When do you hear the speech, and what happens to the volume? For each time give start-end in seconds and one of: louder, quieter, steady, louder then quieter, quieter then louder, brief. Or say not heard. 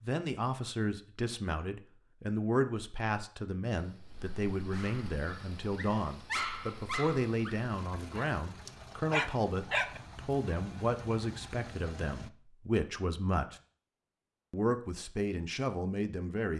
0.0-13.6 steady
14.5-16.5 brief.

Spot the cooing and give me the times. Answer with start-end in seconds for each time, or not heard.
not heard.